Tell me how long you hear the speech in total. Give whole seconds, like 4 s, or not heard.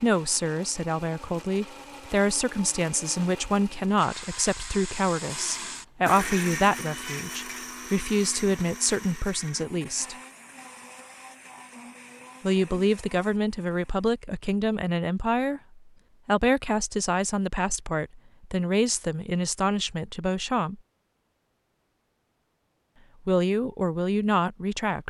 20 s.